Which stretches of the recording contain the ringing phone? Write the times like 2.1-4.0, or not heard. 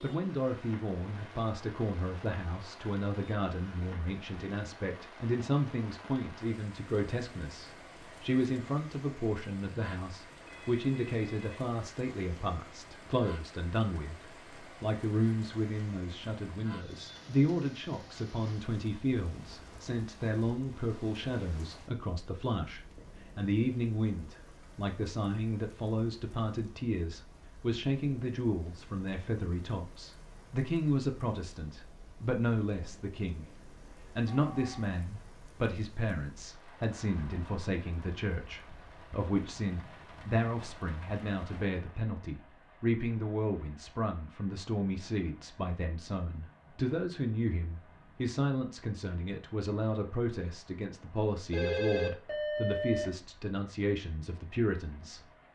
10.4-11.8, 34.2-35.0, 51.5-53.1.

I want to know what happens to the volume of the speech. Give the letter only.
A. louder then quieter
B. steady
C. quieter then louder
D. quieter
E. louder
B.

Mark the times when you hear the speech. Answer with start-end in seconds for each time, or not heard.
0.0-33.5, 34.1-55.2.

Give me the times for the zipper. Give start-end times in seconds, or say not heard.
not heard.